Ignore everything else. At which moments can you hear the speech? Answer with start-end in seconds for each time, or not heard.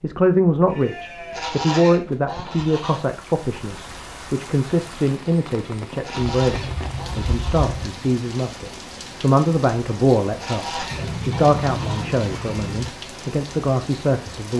0.0-14.5.